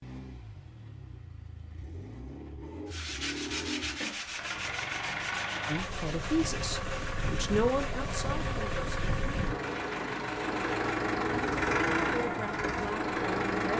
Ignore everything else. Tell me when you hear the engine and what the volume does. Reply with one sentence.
The engine can be heard from 0.0 to 13.7 s, getting louder.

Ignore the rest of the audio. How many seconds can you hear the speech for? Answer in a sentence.
The speech can be heard for 5 seconds in total.